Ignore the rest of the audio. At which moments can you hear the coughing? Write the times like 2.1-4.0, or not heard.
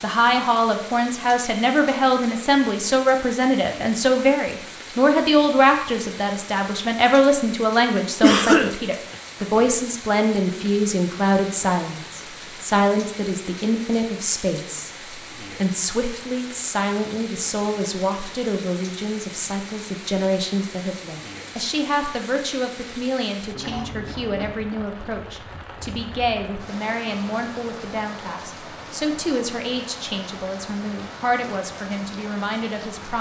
8.2-9.2, 23.6-25.1.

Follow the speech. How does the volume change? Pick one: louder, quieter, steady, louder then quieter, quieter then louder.
quieter.